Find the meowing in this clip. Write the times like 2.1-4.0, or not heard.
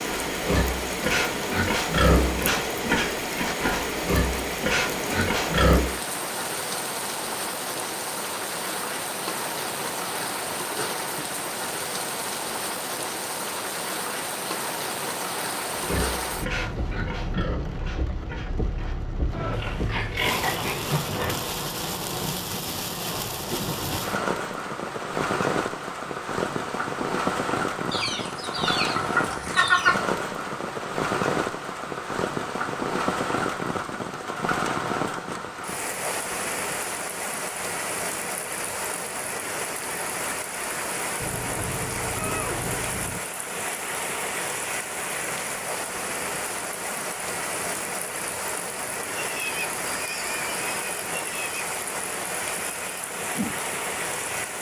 41.1-43.2.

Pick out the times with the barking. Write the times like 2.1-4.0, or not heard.
not heard.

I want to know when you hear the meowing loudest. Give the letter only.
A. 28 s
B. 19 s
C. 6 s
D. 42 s
D.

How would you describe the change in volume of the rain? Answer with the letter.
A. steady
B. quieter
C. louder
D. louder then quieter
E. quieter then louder
A.